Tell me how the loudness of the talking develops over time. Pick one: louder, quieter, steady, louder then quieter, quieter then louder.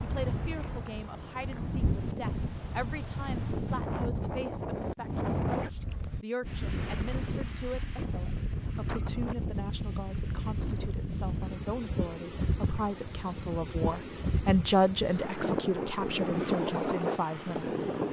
louder.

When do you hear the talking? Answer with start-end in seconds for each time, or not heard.
0.0-17.9.